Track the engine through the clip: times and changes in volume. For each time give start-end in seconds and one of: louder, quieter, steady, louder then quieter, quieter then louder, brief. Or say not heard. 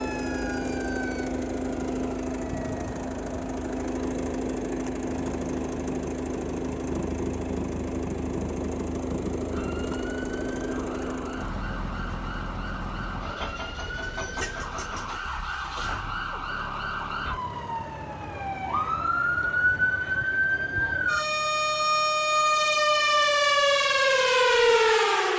0.0-25.3 quieter.